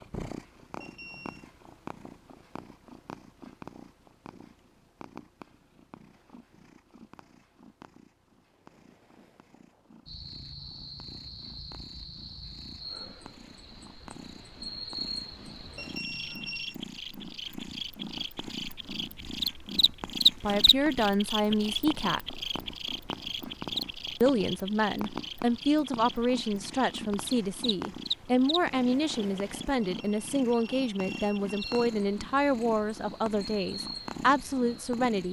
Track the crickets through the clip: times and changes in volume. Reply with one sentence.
You can hear the crickets from 10.1 to 35.2 s, getting louder then quieter.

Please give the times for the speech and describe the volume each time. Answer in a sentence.
The speech can be heard briefly from 20.4 to 22.4 s; and from 24.2 to 35.2 s, at a steady volume.